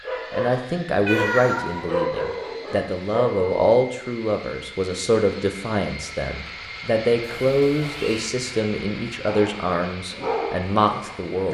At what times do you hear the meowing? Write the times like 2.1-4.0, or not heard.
1.1-1.9, 7.2-8.2.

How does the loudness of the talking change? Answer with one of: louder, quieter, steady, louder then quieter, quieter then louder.
steady.